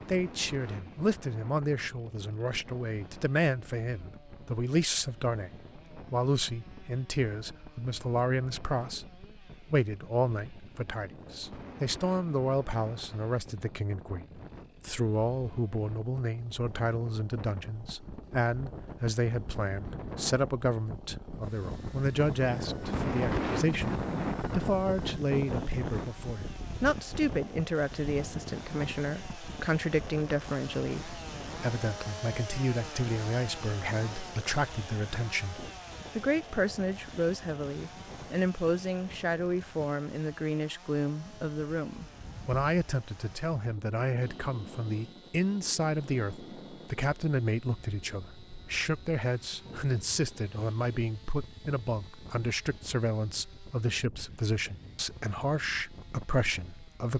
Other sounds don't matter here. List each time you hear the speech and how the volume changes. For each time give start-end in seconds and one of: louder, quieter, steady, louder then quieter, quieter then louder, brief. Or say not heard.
0.1-57.1 steady.